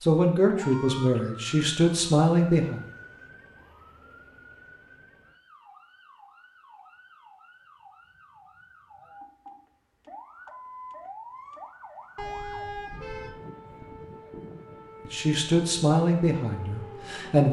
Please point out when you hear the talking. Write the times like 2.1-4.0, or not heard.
0.0-2.8, 15.1-17.4.